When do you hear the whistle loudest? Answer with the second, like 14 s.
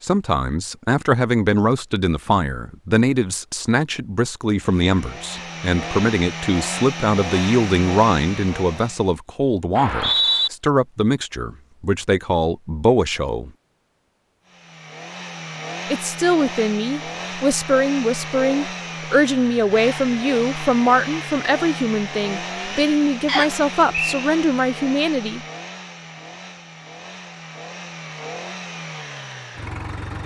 10 s.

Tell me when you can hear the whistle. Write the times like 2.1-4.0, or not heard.
9.8-10.5, 23.2-24.2.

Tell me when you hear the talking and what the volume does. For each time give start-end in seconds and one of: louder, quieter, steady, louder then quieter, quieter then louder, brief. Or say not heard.
0.0-13.5 steady
15.9-25.4 steady.